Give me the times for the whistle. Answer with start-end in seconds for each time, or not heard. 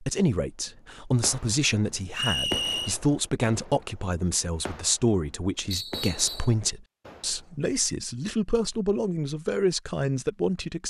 2.1-3.0, 5.7-6.5.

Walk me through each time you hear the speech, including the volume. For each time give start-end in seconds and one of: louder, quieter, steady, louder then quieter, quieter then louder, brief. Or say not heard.
0.0-10.8 steady.